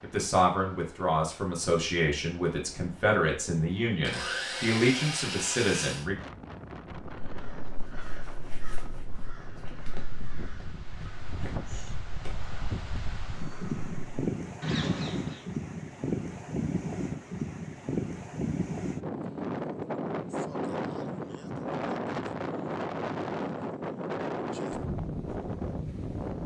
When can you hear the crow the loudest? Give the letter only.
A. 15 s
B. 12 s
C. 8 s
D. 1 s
A.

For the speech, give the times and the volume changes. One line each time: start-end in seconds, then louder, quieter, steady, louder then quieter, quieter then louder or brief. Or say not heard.
0.0-6.2 steady.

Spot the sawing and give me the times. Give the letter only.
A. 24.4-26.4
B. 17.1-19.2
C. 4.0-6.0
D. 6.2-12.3
C.